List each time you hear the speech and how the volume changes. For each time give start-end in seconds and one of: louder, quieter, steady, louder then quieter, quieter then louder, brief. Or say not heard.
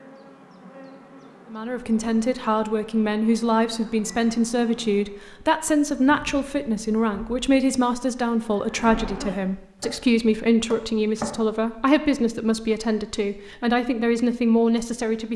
1.5-15.3 steady.